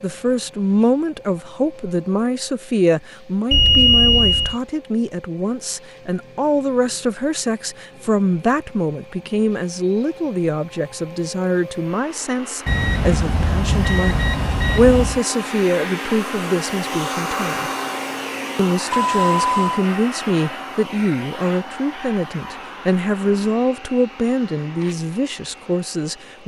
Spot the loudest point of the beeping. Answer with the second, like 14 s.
4 s.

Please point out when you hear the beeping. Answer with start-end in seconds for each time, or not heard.
3.5-4.5, 12.7-15.2, 18.9-19.9.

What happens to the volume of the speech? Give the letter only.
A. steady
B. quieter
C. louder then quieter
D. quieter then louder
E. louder
A.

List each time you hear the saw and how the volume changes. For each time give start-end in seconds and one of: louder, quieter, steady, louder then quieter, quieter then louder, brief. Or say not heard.
not heard.